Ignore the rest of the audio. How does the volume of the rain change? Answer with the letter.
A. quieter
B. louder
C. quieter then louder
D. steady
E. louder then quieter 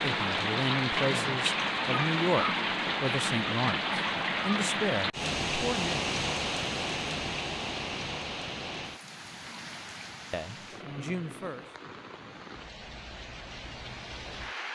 A.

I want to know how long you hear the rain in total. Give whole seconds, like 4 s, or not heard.
15 s.